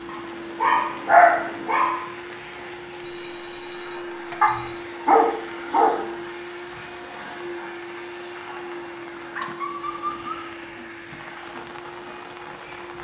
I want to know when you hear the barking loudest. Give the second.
1 s.